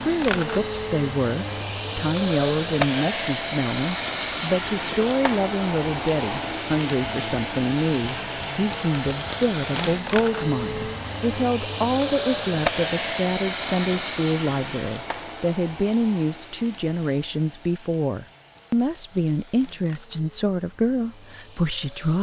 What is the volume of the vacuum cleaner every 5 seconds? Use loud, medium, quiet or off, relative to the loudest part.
loud, loud, loud, quiet, quiet.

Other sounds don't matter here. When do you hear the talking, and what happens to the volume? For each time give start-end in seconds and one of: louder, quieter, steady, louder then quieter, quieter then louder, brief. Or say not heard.
0.0-22.1 steady.